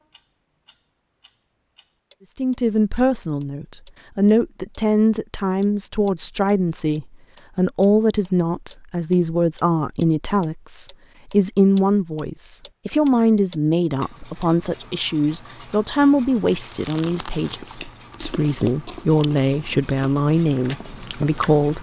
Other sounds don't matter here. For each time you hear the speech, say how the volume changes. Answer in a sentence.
You can hear the speech from 2.4 to 21.7 s, at a steady volume.